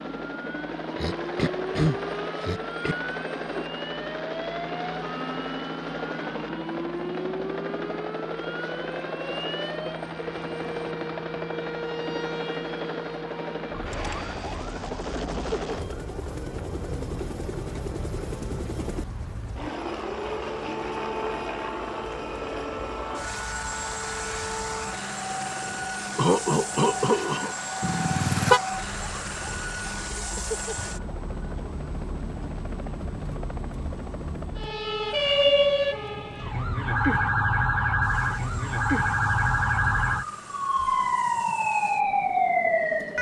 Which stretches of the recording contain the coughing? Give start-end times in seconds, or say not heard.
0.9-3.0, 26.1-27.6.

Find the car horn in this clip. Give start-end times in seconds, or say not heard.
27.8-28.6.